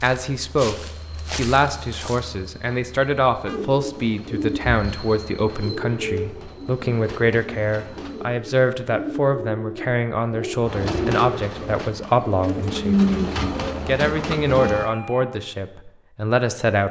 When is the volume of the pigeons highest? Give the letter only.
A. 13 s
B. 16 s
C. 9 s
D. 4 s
A.